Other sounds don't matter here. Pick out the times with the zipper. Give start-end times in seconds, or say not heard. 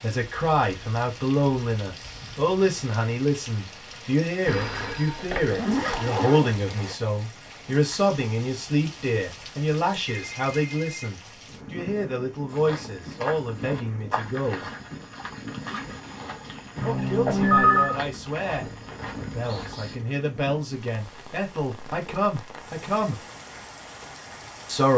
5.5-7.0, 15.6-17.2.